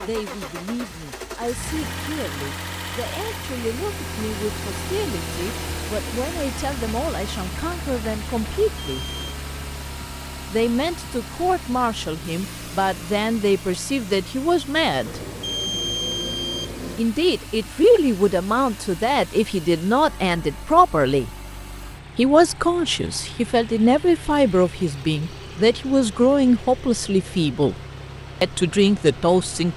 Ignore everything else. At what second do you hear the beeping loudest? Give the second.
16 s.